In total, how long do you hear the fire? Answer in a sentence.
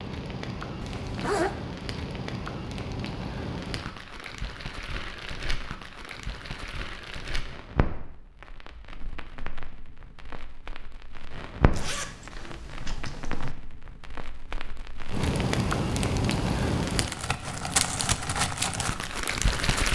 The fire can be heard for 20 seconds in total.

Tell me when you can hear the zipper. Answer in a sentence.
The zipper can be heard from 0.8 to 1.6 s and from 11.7 to 13.6 s.